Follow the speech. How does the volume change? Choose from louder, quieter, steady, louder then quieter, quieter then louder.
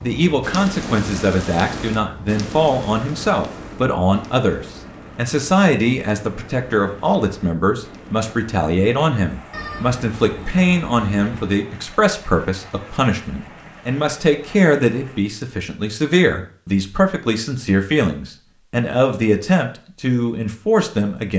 steady.